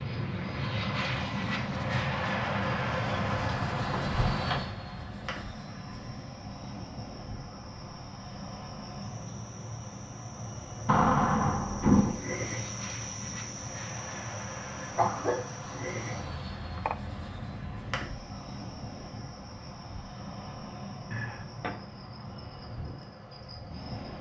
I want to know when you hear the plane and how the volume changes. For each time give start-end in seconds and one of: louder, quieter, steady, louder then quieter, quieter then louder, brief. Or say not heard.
0.0-24.1 quieter.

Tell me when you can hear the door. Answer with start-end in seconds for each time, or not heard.
3.0-4.8, 10.8-12.2, 21.1-21.8.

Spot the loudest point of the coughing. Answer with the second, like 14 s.
15 s.